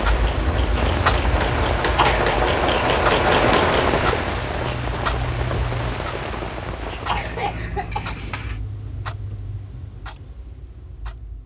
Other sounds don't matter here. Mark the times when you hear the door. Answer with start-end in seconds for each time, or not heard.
not heard.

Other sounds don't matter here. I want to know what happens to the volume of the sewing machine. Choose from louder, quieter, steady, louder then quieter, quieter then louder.
louder.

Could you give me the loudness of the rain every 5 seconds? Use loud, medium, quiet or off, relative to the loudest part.
loud, medium, off.